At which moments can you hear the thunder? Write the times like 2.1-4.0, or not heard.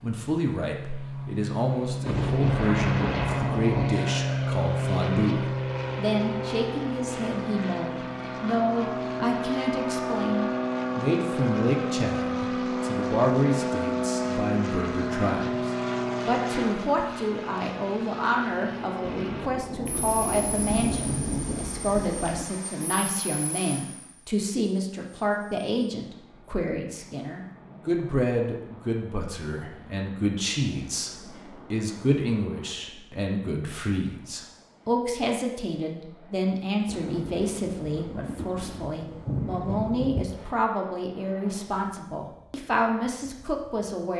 2.0-3.7, 19.1-22.4, 36.9-40.2.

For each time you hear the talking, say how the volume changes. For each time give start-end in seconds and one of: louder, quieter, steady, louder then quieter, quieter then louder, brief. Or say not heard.
0.0-44.1 steady.